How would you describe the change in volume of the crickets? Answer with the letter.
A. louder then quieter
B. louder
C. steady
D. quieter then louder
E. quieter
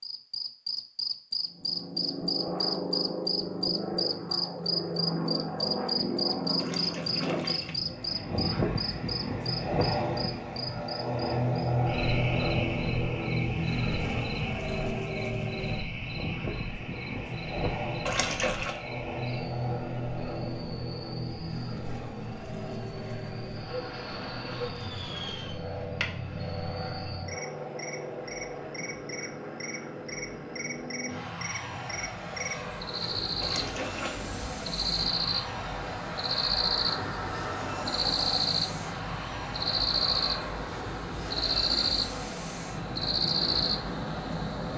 D.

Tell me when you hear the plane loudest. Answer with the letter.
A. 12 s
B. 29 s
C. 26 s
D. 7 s
A.